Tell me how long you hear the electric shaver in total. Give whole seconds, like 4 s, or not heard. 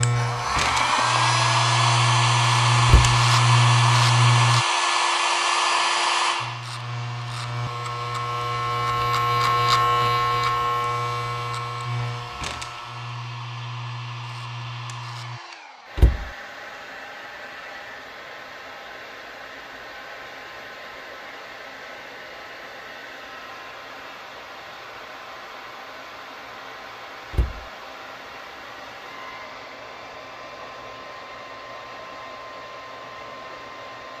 14 s.